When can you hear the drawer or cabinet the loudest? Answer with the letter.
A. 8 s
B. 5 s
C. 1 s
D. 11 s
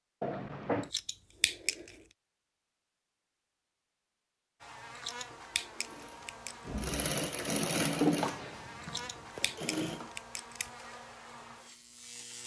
A.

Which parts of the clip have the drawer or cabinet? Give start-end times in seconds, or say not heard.
0.2-0.9, 6.7-8.3.